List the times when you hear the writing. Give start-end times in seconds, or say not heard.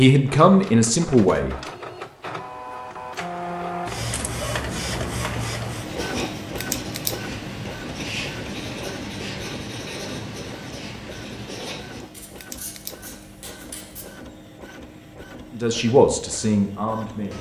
5.8-14.2.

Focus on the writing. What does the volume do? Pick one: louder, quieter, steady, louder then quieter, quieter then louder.
quieter.